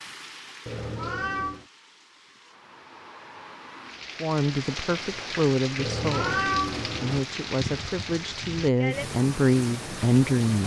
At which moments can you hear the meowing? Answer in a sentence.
You can hear the meowing from 0.7 to 1.6 s and from 5.8 to 7.2 s.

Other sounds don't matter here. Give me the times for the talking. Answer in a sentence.
You can hear the talking from 4.2 to 10.6 s.